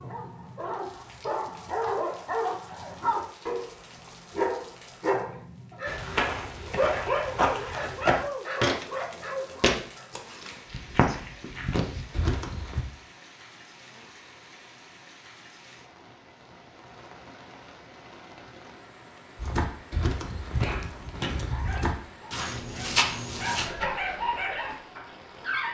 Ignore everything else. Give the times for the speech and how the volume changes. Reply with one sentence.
You can't hear the speech here.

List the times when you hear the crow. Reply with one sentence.
You can't hear the crow here.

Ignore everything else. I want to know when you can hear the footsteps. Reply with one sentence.
You can hear the footsteps from 5.8 to 12.8 s and from 19.4 to 23.7 s.